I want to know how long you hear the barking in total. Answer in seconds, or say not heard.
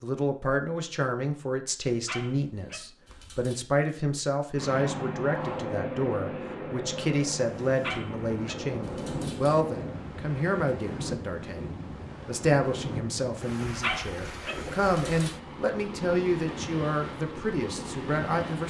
5 s.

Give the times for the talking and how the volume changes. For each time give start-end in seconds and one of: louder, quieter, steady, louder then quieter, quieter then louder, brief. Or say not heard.
0.0-18.6 steady.